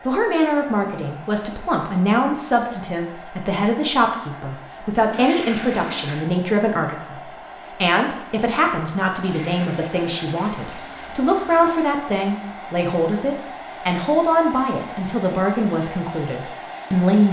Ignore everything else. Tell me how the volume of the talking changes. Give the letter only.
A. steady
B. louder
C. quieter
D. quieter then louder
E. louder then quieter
A.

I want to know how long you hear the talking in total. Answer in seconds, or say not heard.
17 s.